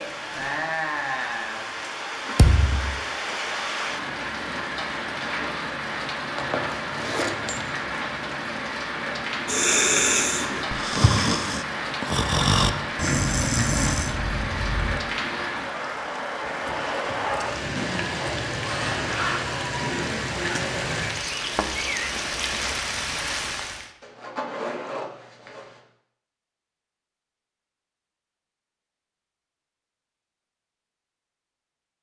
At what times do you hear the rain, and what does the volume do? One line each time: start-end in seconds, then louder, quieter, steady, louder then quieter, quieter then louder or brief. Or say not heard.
0.0-23.9 steady.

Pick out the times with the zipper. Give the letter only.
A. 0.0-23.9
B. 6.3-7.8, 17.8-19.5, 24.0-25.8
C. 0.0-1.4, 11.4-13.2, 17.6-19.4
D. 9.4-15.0
B.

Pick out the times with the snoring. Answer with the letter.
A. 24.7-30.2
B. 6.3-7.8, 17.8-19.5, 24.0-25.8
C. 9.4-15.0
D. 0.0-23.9
C.